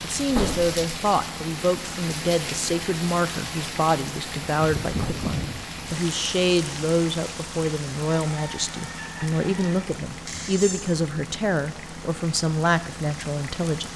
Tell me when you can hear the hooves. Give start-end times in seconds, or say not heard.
not heard.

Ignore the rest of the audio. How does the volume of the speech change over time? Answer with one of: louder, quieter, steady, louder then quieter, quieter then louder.
steady.